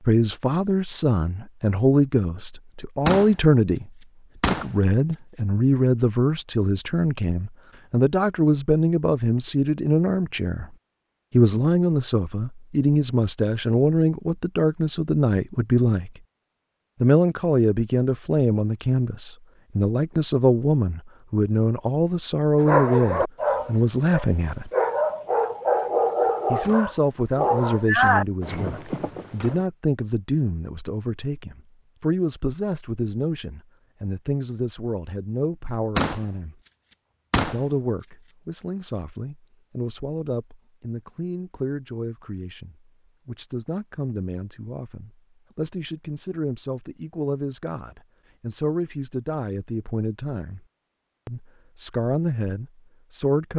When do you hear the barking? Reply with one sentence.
You can hear the barking from 22.6 to 29.6 s.